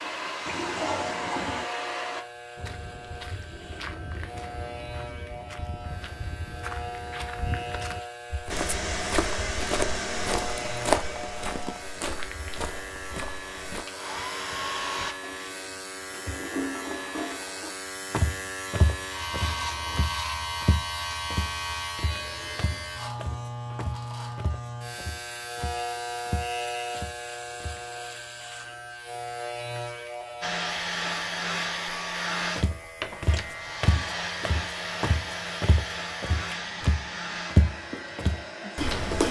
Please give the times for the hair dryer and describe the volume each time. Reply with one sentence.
You can hear the hair dryer briefly from 0.0 to 2.2 s; from 8.4 to 15.2 s, getting quieter then louder; and from 30.4 to 39.2 s, getting quieter.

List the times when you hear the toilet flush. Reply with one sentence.
You can hear the toilet flush from 0.5 to 1.6 s, from 15.2 to 17.8 s and from 33.0 to 33.6 s.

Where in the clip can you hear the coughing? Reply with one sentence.
The coughing can't be heard in this clip.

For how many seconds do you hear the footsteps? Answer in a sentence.
The footsteps can be heard for 28 seconds in total.